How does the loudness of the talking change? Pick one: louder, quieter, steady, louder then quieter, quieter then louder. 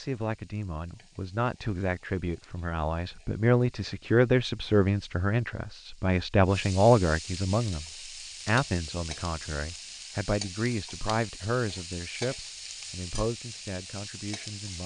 louder then quieter.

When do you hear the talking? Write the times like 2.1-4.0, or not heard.
0.0-7.8, 8.4-14.8.